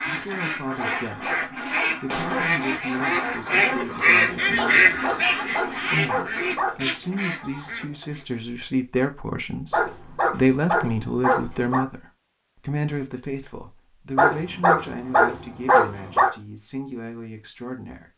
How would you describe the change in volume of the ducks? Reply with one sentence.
The volume of the ducks goes up, then down.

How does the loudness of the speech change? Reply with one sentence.
The volume of the speech goes up, then down.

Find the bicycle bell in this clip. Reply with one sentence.
You can't hear the bicycle bell here.